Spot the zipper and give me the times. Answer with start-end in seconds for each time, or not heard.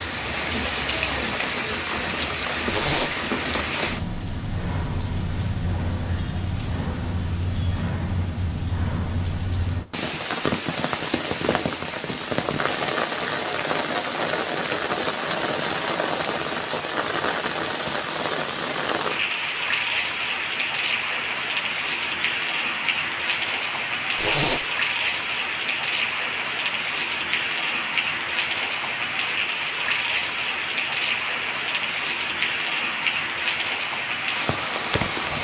2.6-3.1, 24.1-24.6.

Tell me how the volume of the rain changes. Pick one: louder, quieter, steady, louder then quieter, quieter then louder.
steady.